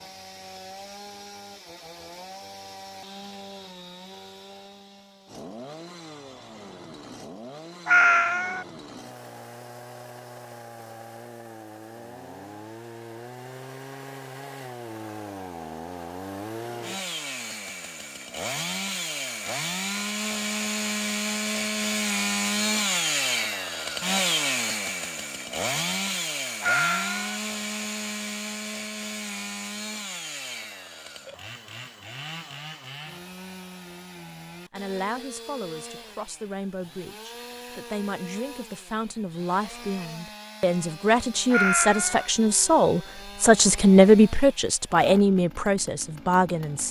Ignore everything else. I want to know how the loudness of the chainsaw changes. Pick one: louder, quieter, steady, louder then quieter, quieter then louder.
louder then quieter.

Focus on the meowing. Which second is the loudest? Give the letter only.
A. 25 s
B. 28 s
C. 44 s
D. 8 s
D.